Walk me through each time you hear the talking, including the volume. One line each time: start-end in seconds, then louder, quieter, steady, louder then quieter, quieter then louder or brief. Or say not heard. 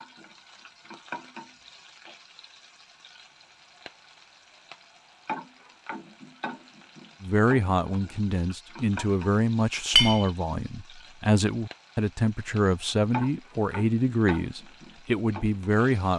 7.2-16.1 steady.